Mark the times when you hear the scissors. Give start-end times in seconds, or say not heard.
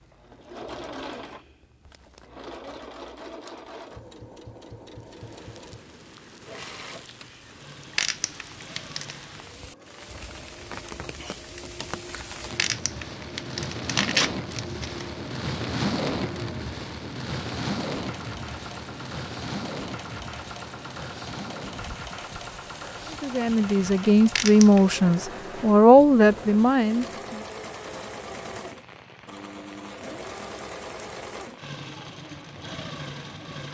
not heard.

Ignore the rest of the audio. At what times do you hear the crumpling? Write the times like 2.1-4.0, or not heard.
8.0-9.2, 12.6-15.1, 24.4-25.0.